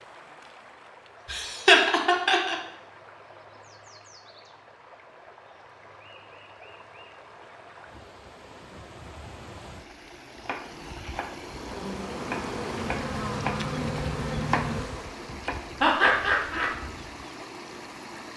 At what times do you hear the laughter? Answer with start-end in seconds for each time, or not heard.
1.3-2.5, 15.8-16.7.